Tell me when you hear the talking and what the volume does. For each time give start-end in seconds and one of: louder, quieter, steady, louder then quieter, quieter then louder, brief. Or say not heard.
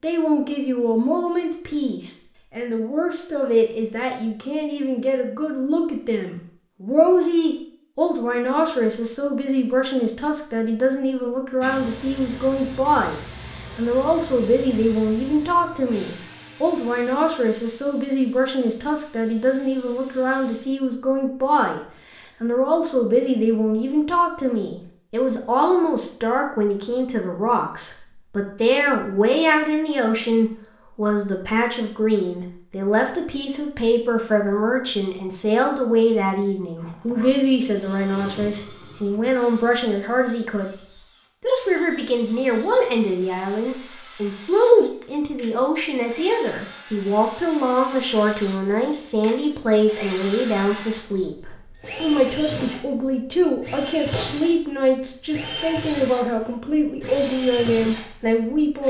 0.0-21.8 steady
22.4-58.8 steady.